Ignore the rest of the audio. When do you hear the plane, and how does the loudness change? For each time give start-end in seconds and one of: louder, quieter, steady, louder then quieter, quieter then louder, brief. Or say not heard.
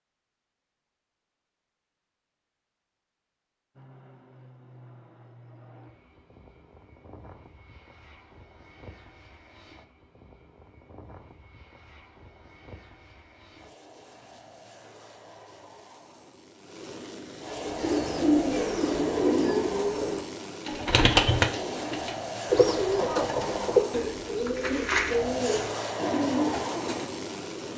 3.8-27.7 louder.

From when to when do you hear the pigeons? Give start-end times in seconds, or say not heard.
17.6-27.1.